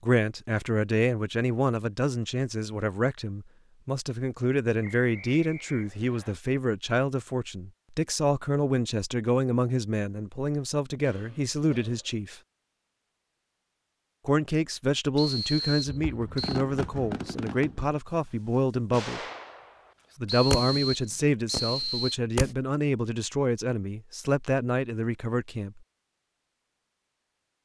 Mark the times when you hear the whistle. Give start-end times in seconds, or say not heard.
4.8-6.3, 15.2-16.6, 20.2-22.1.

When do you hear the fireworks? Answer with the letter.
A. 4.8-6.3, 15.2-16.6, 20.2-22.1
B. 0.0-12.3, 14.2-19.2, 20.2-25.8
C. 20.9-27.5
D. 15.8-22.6
D.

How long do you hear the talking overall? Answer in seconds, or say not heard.
23 s.